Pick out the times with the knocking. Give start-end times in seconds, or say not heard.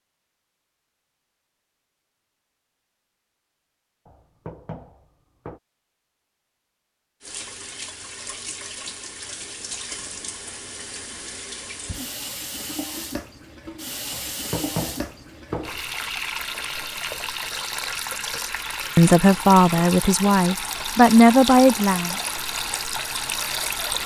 4.0-5.6, 14.1-15.9.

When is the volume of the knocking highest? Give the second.
15 s.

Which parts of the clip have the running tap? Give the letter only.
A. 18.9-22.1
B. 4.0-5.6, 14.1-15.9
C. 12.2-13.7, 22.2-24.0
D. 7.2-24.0
D.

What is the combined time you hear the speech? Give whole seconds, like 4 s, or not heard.
3 s.